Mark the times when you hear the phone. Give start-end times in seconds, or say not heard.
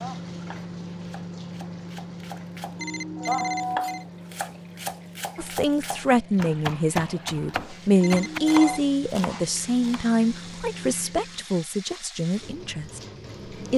2.8-4.0, 8.0-8.8.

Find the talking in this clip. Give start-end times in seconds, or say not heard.
5.3-13.0.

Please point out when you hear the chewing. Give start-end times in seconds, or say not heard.
not heard.